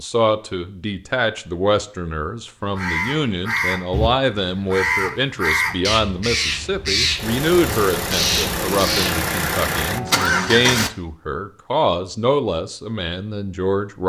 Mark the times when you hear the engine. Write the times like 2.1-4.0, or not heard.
7.2-10.9.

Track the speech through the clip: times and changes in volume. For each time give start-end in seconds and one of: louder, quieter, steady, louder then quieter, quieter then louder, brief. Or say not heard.
0.0-14.0 steady.